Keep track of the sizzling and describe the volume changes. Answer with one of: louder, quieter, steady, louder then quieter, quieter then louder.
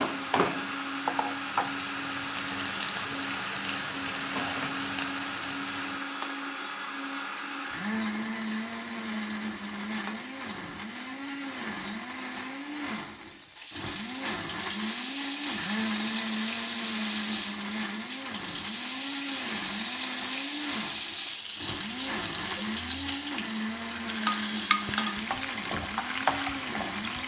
quieter then louder.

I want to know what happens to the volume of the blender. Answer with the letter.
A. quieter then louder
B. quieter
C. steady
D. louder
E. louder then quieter
C.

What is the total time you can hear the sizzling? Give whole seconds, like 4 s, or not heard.
27 s.